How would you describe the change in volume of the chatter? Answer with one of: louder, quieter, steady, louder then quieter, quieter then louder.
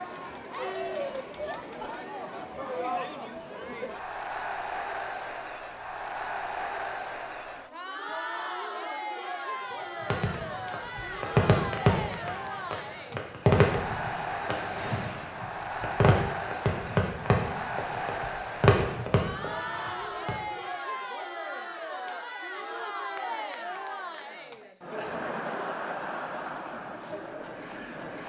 steady.